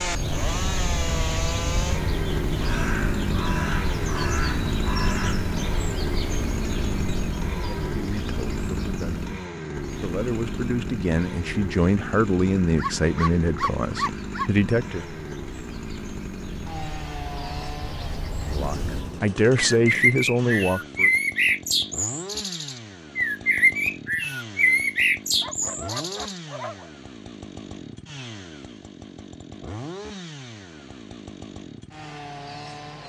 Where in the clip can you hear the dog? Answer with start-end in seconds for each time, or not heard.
12.8-14.6, 25.4-26.9.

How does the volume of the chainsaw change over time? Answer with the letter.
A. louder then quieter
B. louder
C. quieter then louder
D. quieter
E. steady
D.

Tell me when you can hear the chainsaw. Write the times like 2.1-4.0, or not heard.
0.0-33.0.